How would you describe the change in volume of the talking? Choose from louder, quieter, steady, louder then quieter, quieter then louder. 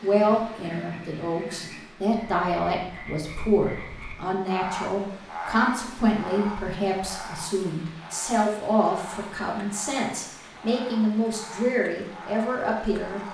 steady.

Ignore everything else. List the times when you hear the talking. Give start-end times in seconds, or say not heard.
0.0-13.2.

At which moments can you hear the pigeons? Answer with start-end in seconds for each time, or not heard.
not heard.